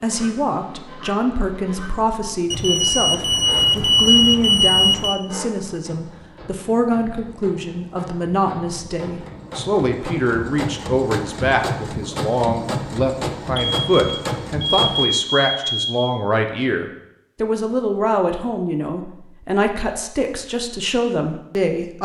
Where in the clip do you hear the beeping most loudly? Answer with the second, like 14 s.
4 s.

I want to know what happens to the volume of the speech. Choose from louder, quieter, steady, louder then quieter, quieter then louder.
steady.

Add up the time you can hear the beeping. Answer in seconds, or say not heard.
5 s.